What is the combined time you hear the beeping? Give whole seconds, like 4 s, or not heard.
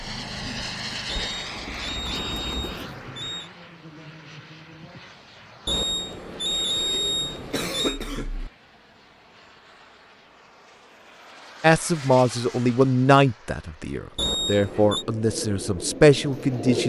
6 s.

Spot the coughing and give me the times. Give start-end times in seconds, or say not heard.
6.8-8.5.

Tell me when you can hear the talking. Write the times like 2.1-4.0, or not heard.
11.6-16.8.